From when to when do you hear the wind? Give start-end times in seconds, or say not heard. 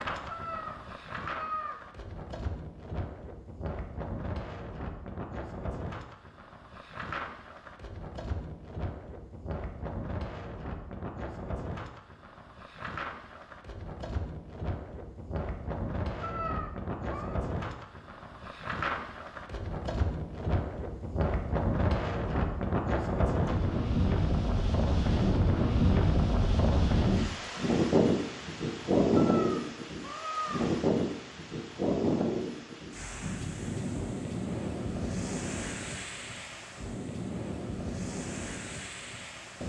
0.0-39.6.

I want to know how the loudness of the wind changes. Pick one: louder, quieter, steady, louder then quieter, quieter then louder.
louder then quieter.